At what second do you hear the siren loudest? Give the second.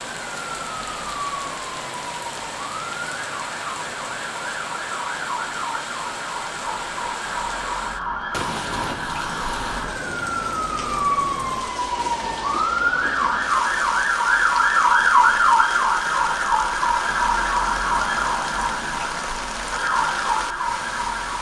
15 s.